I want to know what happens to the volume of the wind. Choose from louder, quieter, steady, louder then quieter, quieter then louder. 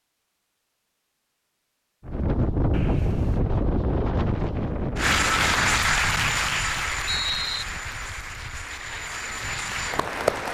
quieter.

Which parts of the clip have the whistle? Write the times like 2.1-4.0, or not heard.
2.7-3.4, 6.0-7.7.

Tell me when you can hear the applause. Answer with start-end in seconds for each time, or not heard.
5.0-10.4.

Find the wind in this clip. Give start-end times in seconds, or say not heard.
2.0-10.4.